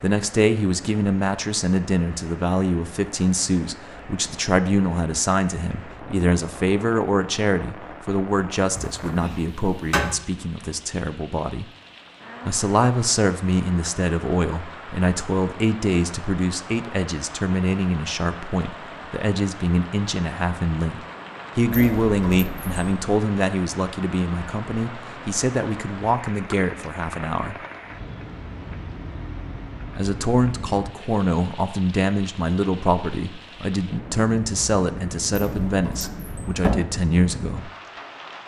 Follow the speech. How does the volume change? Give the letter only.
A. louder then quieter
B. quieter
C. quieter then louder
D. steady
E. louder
D.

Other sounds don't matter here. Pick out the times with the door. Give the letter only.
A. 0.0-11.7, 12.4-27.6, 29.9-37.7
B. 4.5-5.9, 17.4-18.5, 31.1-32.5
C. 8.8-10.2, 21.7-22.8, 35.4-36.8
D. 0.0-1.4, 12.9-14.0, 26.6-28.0
C.